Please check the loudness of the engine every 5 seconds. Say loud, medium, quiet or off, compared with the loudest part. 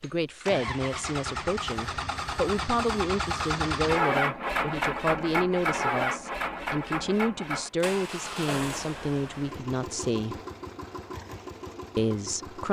loud, loud, medium.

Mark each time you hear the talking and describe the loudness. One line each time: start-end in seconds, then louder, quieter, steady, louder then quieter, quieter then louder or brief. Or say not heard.
0.0-10.4 steady
11.9-12.6 brief.